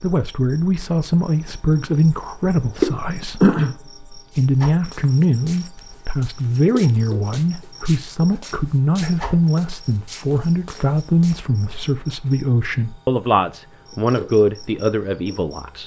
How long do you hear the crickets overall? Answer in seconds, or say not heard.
16 s.